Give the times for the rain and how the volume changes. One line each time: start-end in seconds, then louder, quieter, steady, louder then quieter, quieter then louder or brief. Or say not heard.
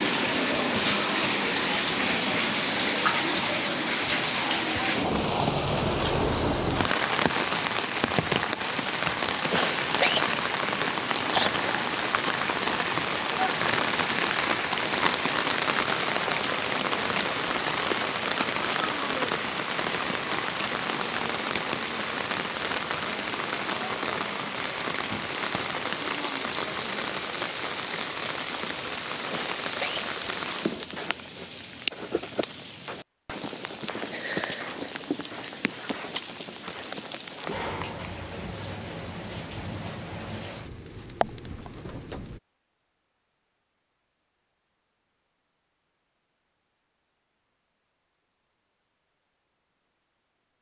0.0-42.4 quieter.